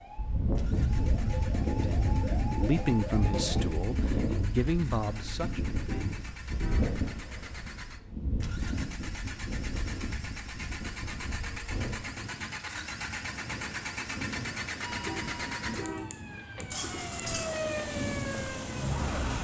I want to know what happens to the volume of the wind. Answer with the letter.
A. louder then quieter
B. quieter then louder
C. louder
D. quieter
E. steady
D.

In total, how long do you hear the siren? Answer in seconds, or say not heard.
8 s.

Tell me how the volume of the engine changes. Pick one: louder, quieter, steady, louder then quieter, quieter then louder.
louder.